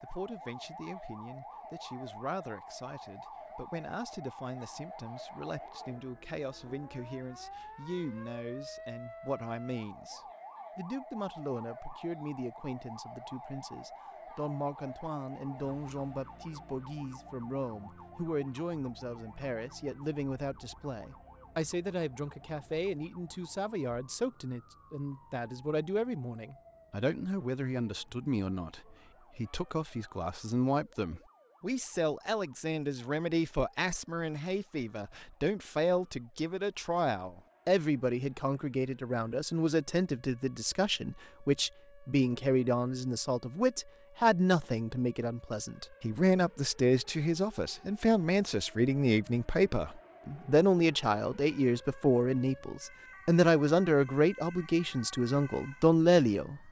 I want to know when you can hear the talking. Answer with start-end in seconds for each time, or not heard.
0.0-56.6.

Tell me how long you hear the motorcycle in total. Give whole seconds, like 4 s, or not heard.
not heard.